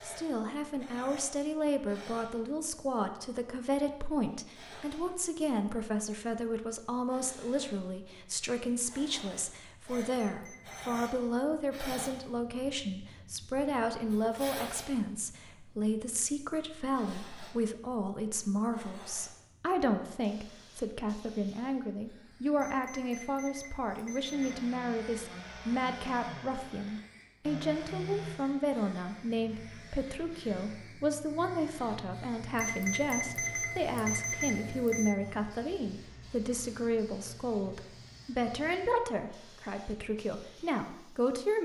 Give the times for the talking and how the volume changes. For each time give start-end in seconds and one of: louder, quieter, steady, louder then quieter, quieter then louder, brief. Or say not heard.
0.0-41.6 steady.